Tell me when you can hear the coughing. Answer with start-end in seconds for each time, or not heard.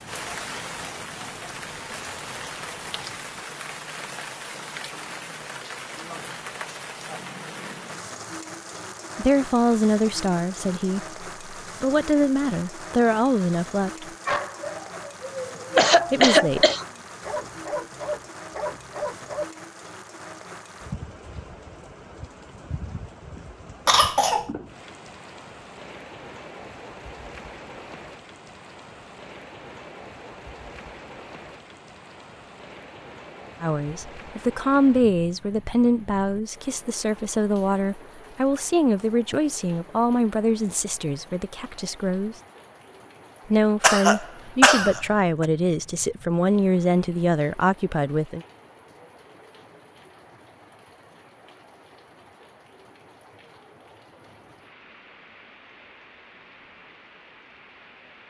15.2-16.9, 23.9-24.5, 43.8-45.5.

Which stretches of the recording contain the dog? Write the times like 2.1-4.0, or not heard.
14.2-19.4.